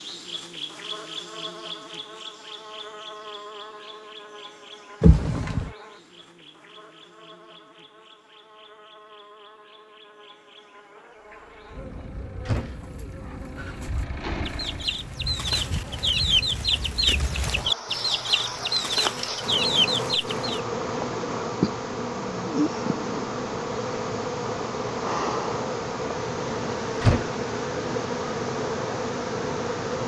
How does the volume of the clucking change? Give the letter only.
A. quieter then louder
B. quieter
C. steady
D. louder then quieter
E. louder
E.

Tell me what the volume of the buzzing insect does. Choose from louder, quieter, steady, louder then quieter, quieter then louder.
quieter then louder.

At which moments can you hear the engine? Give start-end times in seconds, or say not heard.
11.2-15.1.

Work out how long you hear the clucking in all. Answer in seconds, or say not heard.
8 s.